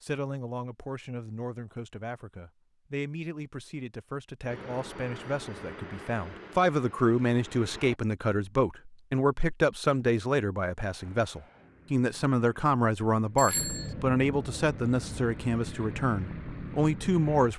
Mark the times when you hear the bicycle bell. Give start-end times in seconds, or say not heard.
13.3-13.9.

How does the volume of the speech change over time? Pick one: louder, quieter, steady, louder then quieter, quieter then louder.
louder.